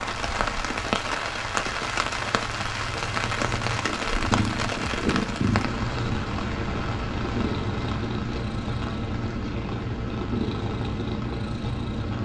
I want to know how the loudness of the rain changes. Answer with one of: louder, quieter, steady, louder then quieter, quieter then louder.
quieter.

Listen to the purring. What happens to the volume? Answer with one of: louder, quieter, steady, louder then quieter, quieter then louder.
louder.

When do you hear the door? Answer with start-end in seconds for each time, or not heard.
not heard.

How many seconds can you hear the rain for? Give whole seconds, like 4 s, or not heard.
12 s.